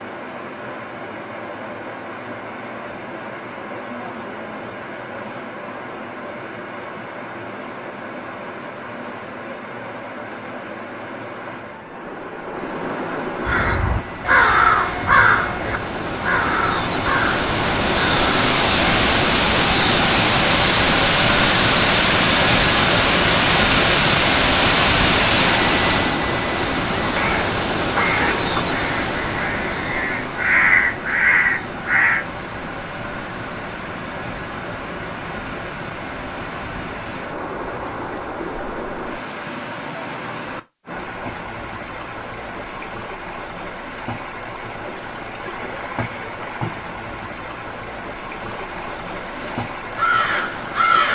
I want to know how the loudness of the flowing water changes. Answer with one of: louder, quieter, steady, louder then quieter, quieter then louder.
louder then quieter.